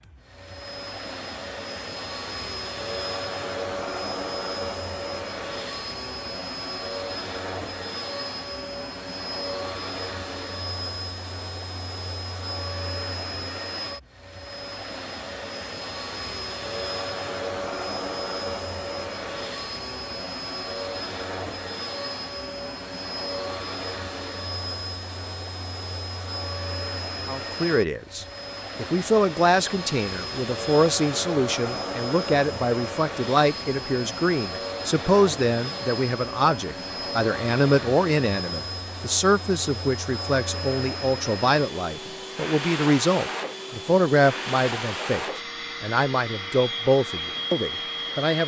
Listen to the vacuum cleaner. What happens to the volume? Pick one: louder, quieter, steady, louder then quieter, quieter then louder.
steady.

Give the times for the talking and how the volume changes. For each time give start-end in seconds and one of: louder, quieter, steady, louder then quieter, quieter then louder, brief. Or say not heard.
27.2-48.4 steady.